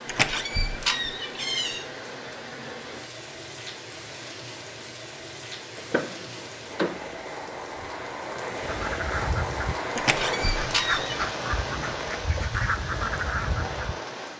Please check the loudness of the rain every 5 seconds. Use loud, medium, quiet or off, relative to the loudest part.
medium, loud, loud.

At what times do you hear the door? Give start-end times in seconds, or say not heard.
0.1-1.9, 5.8-7.0, 9.9-11.2.